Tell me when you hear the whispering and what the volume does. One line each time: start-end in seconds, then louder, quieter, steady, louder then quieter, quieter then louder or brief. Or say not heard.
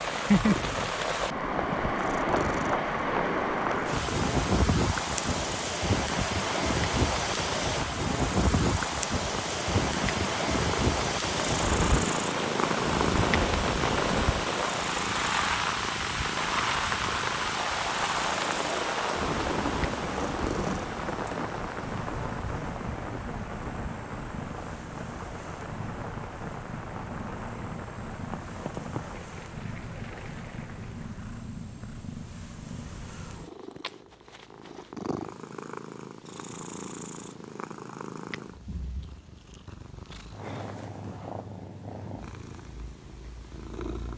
not heard.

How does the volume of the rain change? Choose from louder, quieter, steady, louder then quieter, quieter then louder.
quieter.